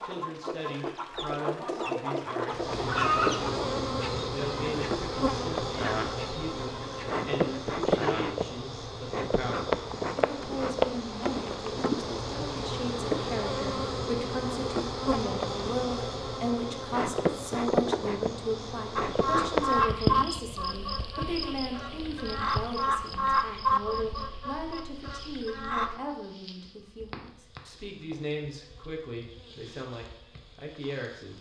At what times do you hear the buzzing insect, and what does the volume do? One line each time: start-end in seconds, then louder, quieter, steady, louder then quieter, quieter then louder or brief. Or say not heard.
2.5-31.3 quieter.